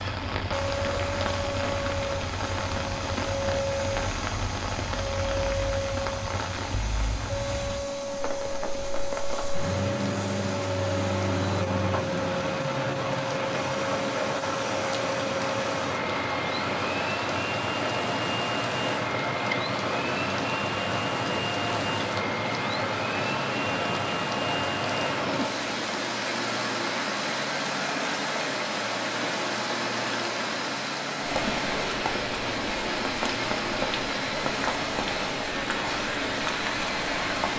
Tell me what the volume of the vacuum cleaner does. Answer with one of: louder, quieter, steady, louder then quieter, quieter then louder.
steady.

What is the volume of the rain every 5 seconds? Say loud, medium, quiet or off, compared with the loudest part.
loud, medium, loud, loud, loud, loud, loud, loud.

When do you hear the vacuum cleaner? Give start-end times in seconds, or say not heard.
0.0-37.5.